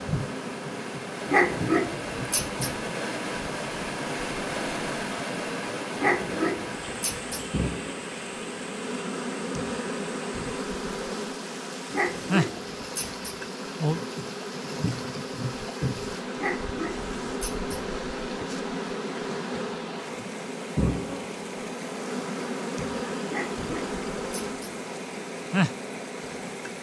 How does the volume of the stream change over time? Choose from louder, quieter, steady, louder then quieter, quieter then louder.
quieter.